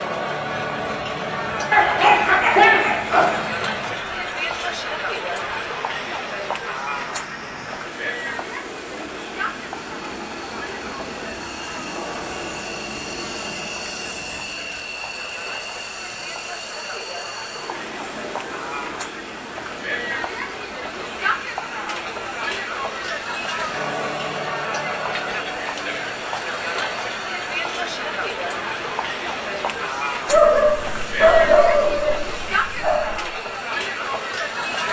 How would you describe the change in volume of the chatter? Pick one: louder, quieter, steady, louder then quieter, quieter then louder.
quieter then louder.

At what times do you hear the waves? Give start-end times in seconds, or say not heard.
not heard.